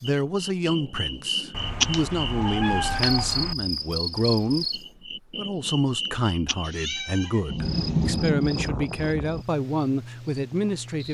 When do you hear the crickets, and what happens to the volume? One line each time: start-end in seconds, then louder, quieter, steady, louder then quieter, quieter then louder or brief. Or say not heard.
0.0-11.0 quieter.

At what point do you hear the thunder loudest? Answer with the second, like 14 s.
8 s.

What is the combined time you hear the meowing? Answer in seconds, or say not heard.
4 s.